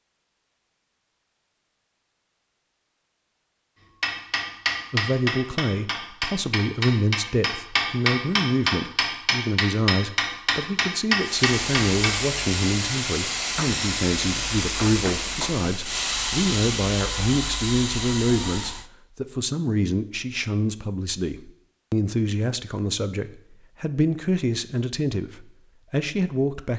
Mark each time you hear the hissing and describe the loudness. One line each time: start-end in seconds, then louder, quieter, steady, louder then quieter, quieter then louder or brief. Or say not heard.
11.2-18.9 steady.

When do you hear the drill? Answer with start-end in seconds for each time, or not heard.
not heard.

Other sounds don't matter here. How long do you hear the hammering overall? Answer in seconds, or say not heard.
8 s.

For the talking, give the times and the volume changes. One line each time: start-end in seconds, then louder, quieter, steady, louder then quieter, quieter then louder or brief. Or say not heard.
4.9-26.7 steady.